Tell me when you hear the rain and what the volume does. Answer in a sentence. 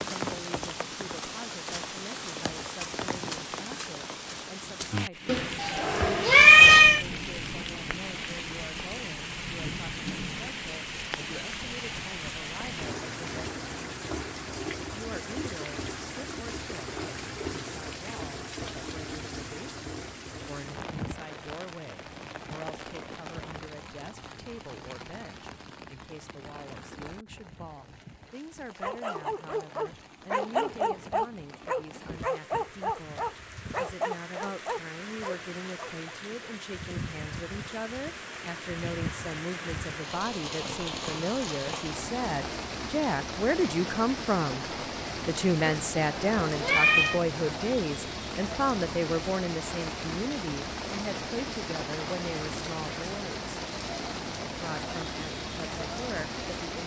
You can hear the rain from 0.0 to 56.8 s, getting quieter then louder.